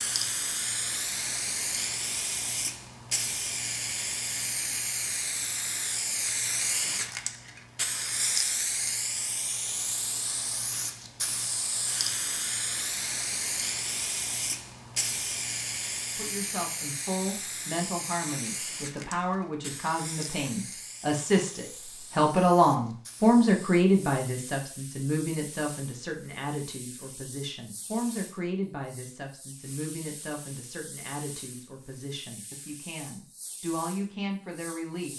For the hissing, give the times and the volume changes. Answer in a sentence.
The hissing can be heard from 0.0 to 35.1 s, getting quieter.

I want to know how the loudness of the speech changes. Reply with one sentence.
The volume of the speech goes up, then down.